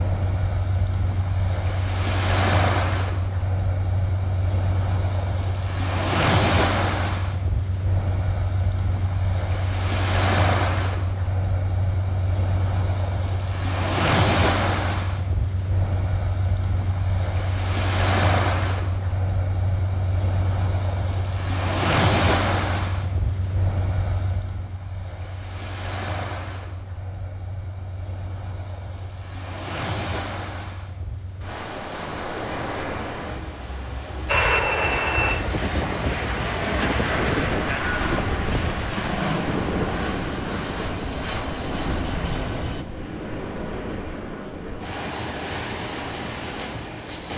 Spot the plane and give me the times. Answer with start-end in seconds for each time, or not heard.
34.2-42.9.